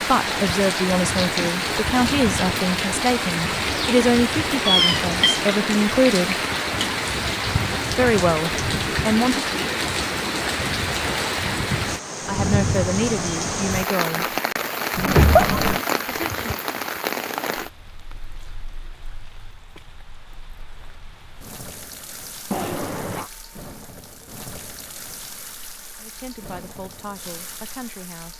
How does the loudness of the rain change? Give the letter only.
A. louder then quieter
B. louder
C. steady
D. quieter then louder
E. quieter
E.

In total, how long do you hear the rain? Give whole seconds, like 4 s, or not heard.
28 s.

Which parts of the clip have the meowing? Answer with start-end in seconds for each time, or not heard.
4.7-5.4, 14.9-15.8, 22.5-23.3.